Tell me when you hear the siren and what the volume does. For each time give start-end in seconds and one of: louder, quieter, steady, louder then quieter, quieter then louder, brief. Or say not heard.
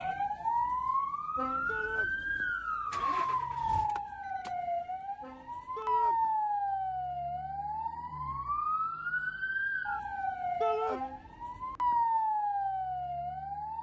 0.0-13.7 steady.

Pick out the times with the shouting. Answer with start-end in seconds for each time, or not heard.
1.6-2.1, 5.8-6.2, 10.6-11.0.